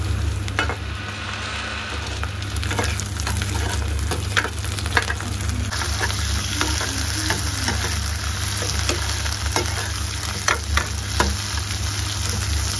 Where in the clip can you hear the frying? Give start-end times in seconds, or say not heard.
0.0-12.7.